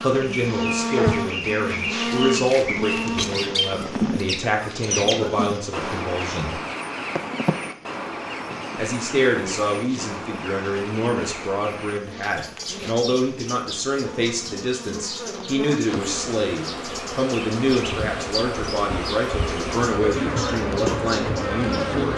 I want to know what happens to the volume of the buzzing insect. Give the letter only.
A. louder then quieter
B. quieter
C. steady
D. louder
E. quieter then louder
E.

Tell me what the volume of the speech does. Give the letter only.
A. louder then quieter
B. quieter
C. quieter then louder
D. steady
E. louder
D.